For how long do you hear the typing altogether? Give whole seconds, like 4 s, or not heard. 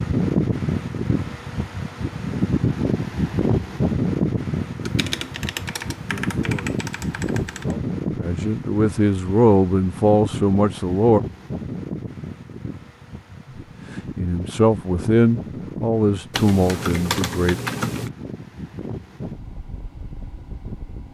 5 s.